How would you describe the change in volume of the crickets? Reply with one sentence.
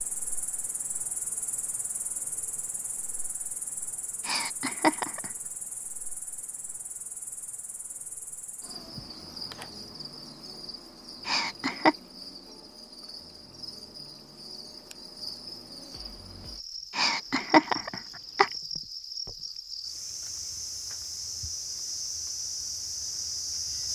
The loudness of the crickets goes up.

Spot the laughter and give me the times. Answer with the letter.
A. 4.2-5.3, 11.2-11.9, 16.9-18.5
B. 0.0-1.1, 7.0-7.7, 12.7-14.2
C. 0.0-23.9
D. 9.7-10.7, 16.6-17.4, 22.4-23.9
A.